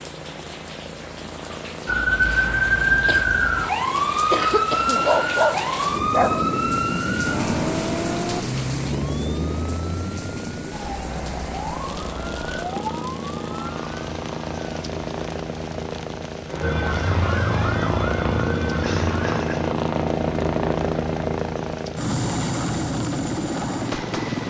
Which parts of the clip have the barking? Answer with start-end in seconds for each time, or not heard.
5.0-6.5.